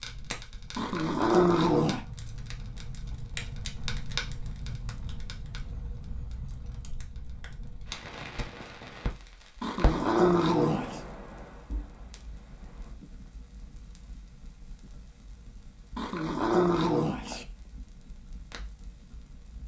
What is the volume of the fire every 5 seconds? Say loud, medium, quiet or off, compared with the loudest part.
loud, loud, medium, quiet.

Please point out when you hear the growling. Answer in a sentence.
You can hear the growling from 0.8 to 2.0 s, from 9.6 to 11.0 s and from 15.9 to 17.4 s.